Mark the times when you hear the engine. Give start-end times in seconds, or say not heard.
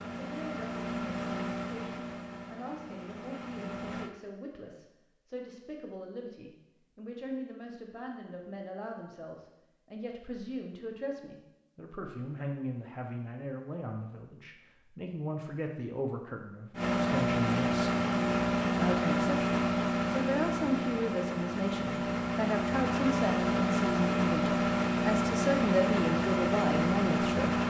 0.0-4.1, 16.8-27.6.